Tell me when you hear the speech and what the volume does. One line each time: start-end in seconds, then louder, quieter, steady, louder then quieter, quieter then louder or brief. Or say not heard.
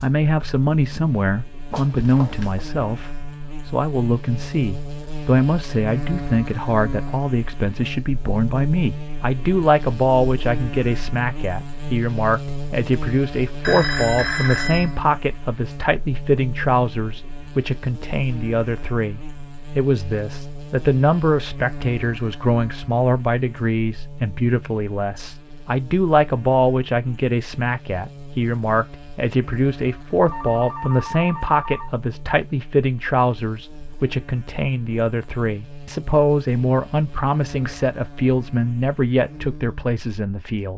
0.0-40.7 steady.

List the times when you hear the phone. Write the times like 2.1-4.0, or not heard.
1.7-2.6, 13.6-14.9, 30.2-31.9.